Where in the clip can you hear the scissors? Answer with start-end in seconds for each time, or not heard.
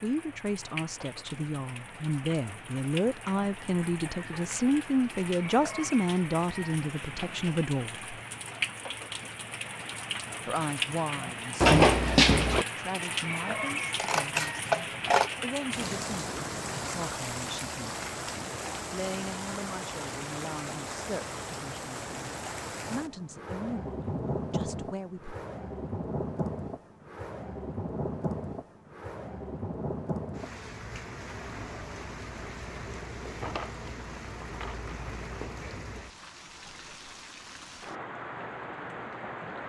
13.9-15.3.